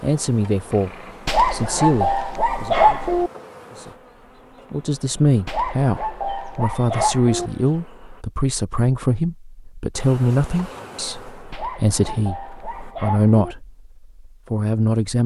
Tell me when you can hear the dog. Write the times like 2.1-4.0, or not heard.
1.2-3.3, 5.5-7.5, 11.5-13.6.